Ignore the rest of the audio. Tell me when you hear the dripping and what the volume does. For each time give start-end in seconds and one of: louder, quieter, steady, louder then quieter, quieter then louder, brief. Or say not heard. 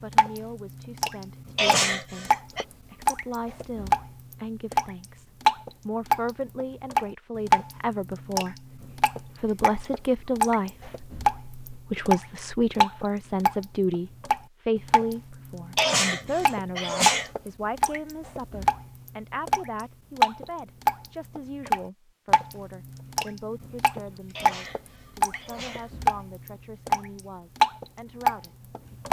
0.0-29.0 steady.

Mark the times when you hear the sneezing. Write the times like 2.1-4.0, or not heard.
1.6-2.6, 15.8-17.3, 24.4-25.9.